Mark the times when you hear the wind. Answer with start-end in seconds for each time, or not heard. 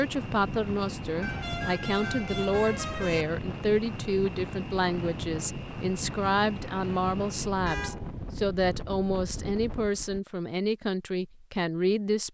0.0-10.2.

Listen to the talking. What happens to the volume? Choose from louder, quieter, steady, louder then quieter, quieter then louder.
steady.